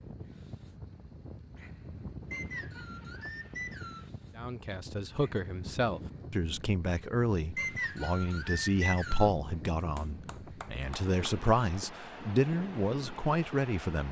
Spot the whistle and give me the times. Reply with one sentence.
The whistle can be heard from 2.3 to 4.1 s and from 7.5 to 9.3 s.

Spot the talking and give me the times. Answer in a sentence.
You can hear the talking from 4.3 to 14.0 s.